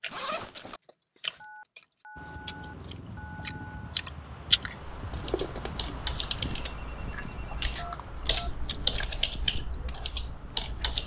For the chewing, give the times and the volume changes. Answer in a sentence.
You can hear the chewing from 0.0 to 11.0 s, getting louder then quieter.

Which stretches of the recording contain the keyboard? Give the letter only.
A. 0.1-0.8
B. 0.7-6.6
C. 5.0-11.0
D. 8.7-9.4
C.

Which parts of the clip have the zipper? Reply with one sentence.
The zipper can be heard from 0.1 to 0.8 s.